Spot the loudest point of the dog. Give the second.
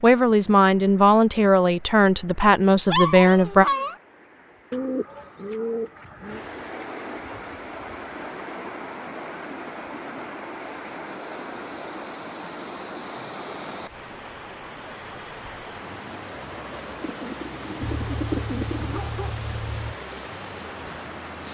3 s.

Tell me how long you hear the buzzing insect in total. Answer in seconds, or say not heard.
not heard.